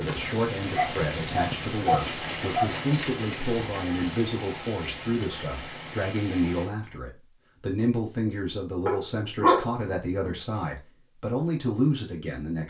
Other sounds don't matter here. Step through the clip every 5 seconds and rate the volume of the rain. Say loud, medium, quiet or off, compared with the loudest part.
loud, medium, off.